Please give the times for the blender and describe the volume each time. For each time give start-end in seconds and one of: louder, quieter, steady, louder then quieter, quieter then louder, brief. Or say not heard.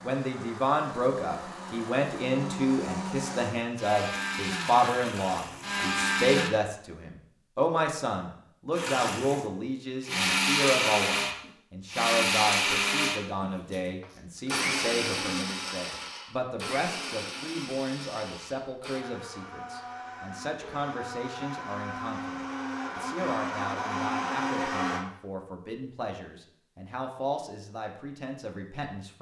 0.0-6.5 louder
8.8-25.1 quieter then louder.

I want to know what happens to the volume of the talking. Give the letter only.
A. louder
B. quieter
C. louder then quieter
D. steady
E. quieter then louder
B.